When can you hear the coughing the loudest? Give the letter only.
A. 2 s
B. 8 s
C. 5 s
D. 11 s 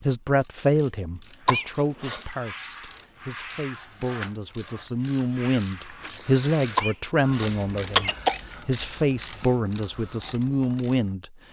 B.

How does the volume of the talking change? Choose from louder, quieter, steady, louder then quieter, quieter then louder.
quieter then louder.